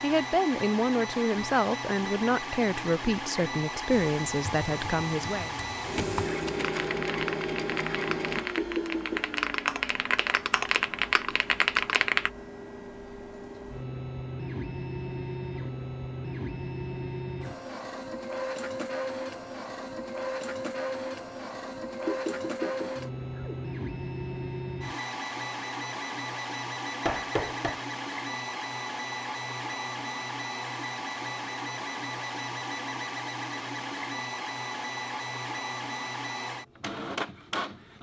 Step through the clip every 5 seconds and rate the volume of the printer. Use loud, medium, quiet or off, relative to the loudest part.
loud, loud, medium, loud, loud, loud, loud, loud.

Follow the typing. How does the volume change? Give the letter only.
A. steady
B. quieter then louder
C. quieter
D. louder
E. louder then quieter
D.